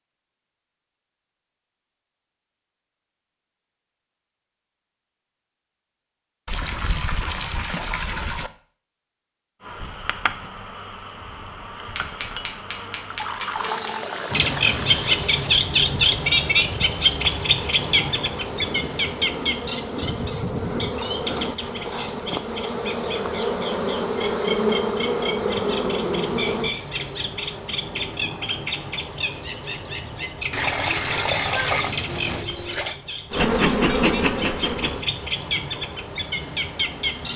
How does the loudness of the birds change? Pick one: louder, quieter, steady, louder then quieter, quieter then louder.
quieter.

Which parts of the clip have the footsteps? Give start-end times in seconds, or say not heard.
not heard.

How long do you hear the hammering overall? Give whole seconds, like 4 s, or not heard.
2 s.